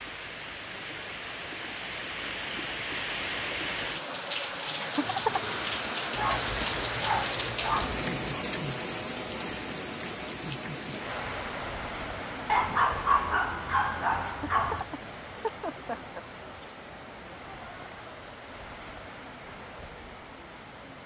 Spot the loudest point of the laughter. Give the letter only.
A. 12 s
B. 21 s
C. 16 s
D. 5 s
D.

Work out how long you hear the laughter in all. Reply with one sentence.
You can hear the laughter for 3 seconds altogether.